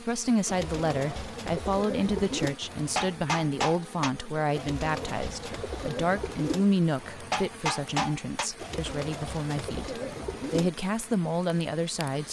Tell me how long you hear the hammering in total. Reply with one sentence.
You can hear the hammering for 3 seconds altogether.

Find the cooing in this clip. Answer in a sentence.
You can hear the cooing from 0.5 to 2.6 s, from 4.5 to 6.7 s and from 8.6 to 10.7 s.